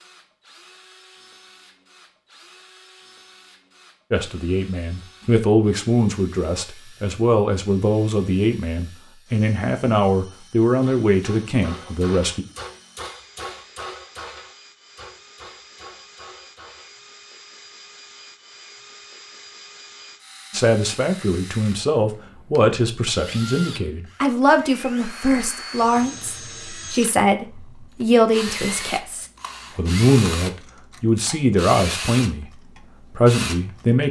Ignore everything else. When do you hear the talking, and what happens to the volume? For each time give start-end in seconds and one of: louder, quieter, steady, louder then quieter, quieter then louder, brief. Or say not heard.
4.1-12.4 steady
20.5-34.0 steady.